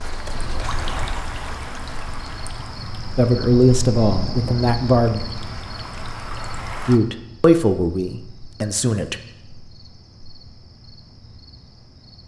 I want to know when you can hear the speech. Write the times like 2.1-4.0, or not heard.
3.1-5.2, 6.8-9.2.